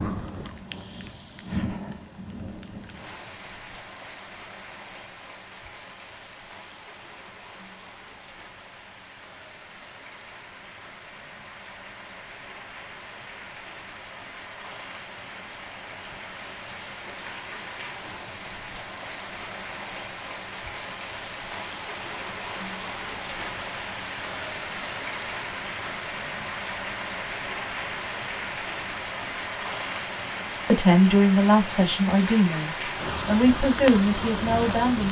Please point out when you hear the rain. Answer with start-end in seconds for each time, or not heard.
0.0-35.0.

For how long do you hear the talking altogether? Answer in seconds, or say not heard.
4 s.